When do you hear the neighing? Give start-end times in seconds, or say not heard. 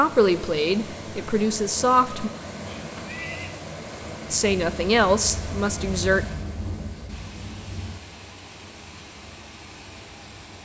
2.6-3.6.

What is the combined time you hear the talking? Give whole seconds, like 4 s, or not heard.
4 s.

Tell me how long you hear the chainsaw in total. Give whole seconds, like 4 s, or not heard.
not heard.